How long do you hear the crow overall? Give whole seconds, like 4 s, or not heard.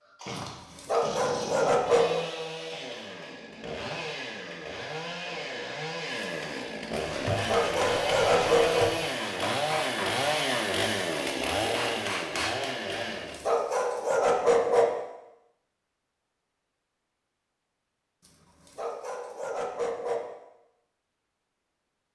not heard.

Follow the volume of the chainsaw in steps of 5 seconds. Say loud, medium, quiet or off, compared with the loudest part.
medium, loud, loud, off, off.